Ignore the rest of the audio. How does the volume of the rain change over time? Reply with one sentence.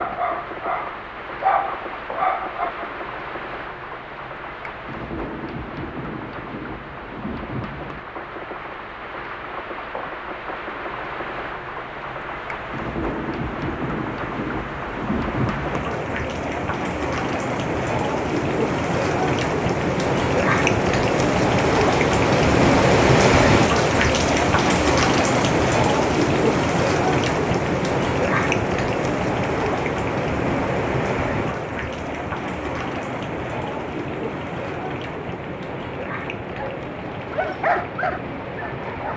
The volume of the rain goes up, then down.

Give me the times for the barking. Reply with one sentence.
You can hear the barking from 0.0 to 2.9 s and from 36.5 to 39.1 s.